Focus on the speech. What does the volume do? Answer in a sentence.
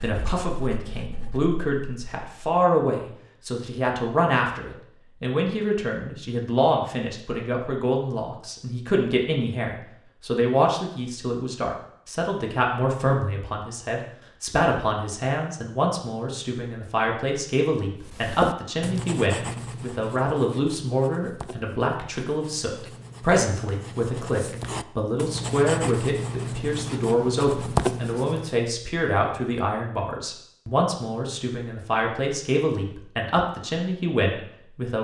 The loudness of the speech stays about the same.